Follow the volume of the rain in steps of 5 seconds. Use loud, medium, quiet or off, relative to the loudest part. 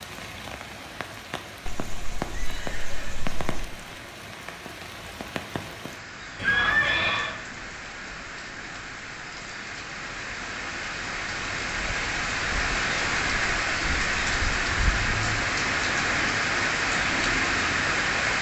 quiet, quiet, loud, loud.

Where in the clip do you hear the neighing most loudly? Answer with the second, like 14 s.
7 s.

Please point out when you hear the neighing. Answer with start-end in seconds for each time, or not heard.
1.6-3.6, 6.3-7.3, 15.1-15.5.